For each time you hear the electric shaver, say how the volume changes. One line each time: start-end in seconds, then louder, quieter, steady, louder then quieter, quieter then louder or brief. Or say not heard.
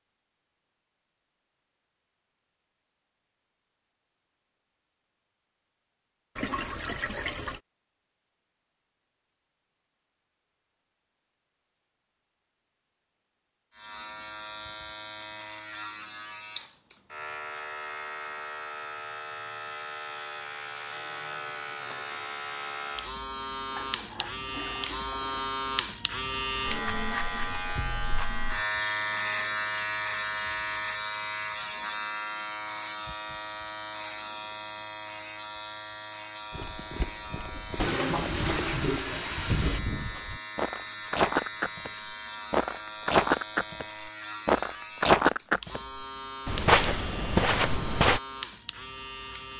13.7-49.5 louder then quieter.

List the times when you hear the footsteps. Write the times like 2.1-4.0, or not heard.
36.5-41.9, 42.5-43.9, 44.5-45.8, 46.5-48.2.